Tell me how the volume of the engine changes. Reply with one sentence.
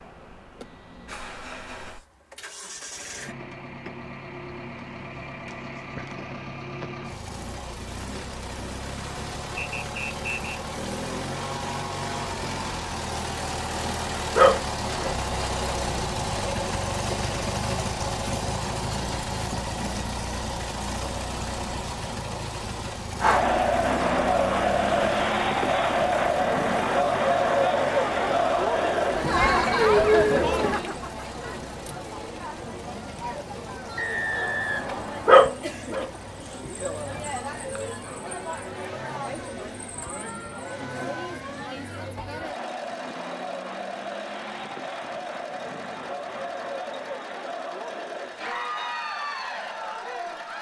The loudness of the engine goes up, then down.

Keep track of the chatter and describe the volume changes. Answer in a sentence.
The volume of the chatter goes down.